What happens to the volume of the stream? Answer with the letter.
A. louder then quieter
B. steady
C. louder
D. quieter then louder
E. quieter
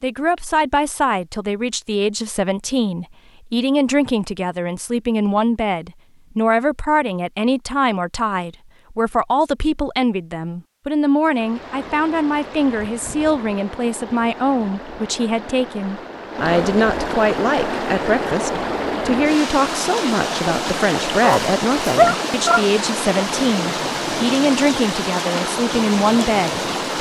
C.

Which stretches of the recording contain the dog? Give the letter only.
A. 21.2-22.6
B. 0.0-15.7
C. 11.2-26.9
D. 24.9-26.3
A.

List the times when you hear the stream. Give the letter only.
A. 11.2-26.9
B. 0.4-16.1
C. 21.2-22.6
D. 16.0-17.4
A.